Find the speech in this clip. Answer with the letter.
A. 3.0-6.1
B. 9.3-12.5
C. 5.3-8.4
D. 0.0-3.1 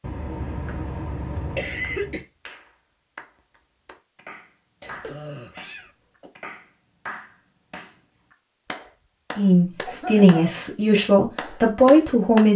B.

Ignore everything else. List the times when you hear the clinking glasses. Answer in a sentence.
The clinking glasses can't be heard in this clip.